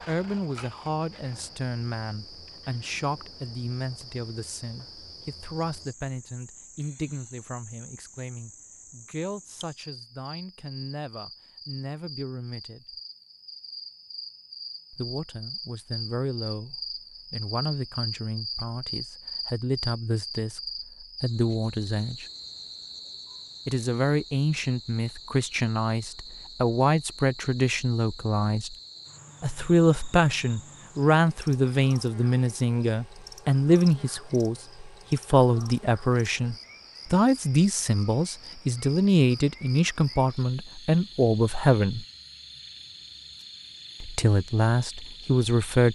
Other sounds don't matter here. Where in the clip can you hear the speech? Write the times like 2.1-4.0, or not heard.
0.1-12.9, 14.9-22.2, 23.6-28.8, 29.4-42.0, 44.0-45.9.